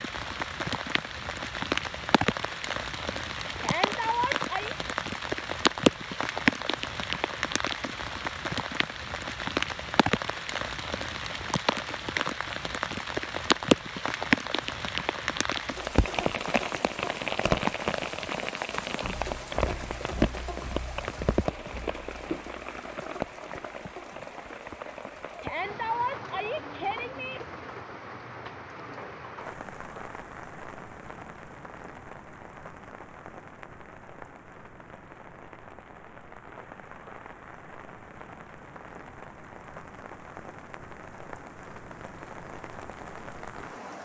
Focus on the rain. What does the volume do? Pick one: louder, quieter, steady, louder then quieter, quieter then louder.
quieter.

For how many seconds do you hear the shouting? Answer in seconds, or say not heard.
3 s.